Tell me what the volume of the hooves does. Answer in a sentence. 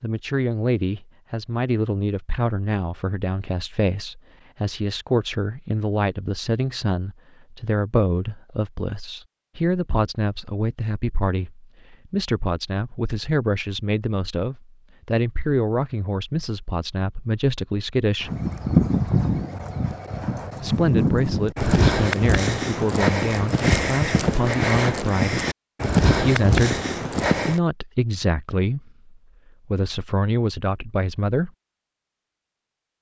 The volume of the hooves stays about the same.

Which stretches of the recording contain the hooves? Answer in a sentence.
The hooves can be heard from 18.2 to 27.6 s.